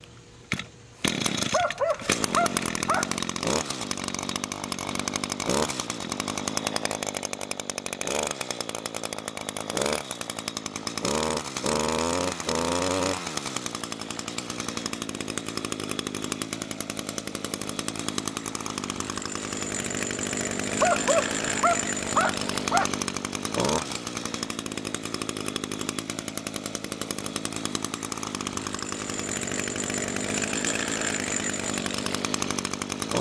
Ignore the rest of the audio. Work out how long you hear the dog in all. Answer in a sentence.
The dog can be heard for 4 seconds in total.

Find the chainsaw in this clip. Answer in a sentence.
The chainsaw can be heard from 0.0 to 33.1 s.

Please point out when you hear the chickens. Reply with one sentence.
You can't hear the chickens here.